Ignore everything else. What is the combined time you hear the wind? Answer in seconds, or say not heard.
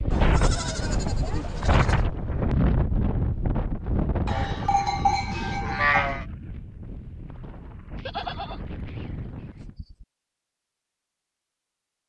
10 s.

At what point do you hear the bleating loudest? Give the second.
6 s.